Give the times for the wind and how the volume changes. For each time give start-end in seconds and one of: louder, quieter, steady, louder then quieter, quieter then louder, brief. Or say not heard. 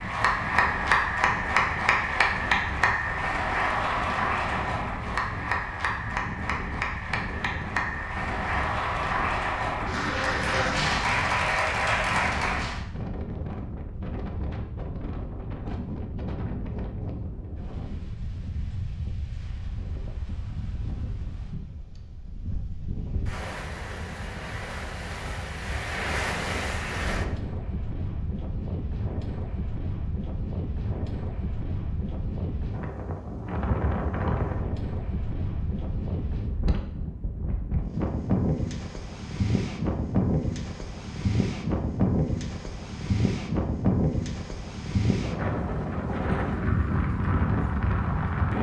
0.0-48.5 louder.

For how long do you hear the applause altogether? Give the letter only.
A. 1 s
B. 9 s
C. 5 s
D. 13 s
D.